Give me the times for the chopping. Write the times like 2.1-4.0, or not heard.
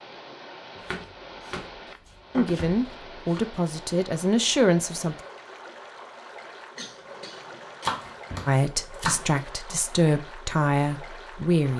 0.8-3.4, 7.8-9.4.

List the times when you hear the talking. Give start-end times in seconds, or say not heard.
2.4-5.2, 8.4-11.7.